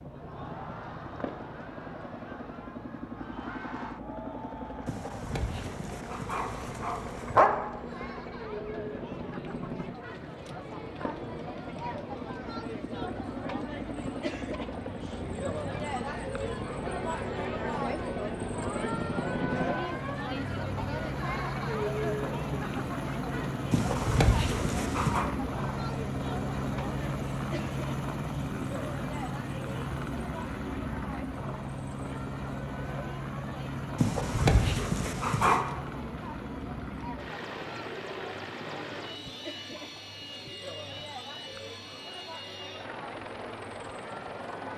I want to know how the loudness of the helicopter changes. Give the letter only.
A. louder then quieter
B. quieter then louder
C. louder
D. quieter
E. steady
A.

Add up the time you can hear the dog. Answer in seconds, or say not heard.
6 s.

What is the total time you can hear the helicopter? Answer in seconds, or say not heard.
45 s.